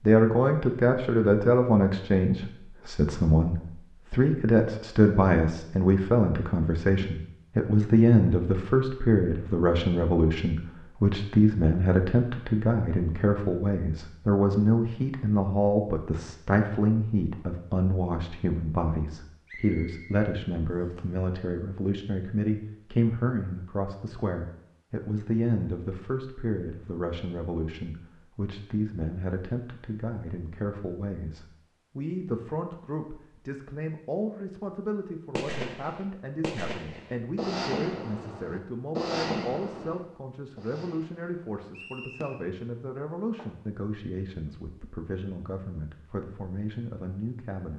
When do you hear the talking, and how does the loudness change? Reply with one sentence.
The talking can be heard from 0.0 to 47.7 s, getting quieter.